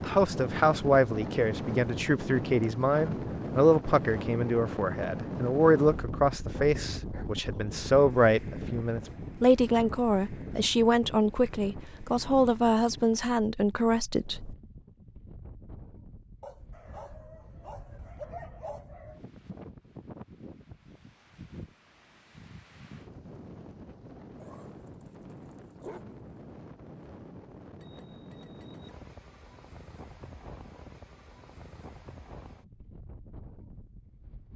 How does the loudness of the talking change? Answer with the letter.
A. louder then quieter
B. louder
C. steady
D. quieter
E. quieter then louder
C.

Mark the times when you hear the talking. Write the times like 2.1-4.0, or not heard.
0.0-14.6.